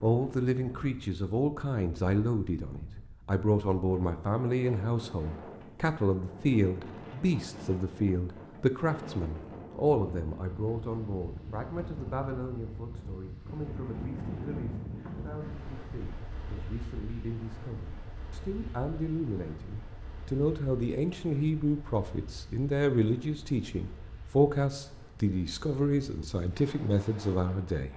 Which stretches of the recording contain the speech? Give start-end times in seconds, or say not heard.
0.0-27.9.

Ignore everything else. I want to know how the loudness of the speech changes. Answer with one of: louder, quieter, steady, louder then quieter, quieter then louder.
quieter then louder.